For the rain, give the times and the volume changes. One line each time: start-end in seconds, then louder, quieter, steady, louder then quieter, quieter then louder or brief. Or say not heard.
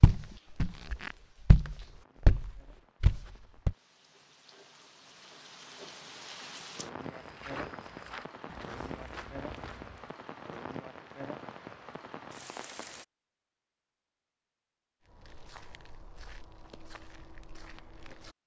0.1-13.1 louder.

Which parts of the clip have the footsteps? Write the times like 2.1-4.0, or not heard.
0.0-3.8, 7.0-10.1, 15.1-18.4.